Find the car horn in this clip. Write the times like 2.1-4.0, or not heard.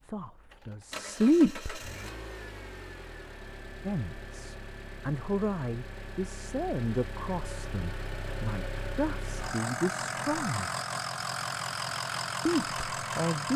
not heard.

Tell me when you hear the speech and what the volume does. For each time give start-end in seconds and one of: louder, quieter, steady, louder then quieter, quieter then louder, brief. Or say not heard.
0.0-1.9 brief
3.8-10.7 steady
12.4-13.5 brief.